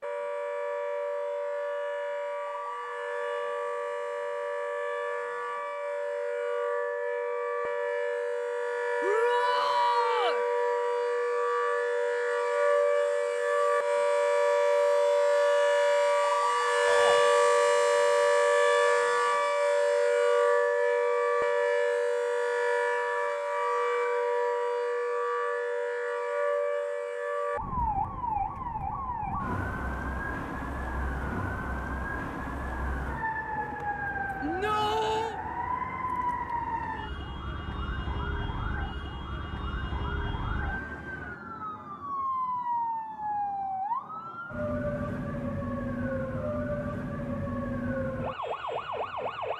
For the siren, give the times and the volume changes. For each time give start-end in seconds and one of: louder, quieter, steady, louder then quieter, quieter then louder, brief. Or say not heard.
0.0-49.5 louder then quieter.